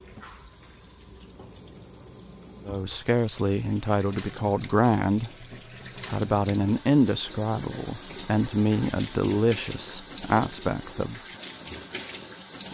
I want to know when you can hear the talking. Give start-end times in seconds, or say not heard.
2.6-5.3, 6.1-11.2.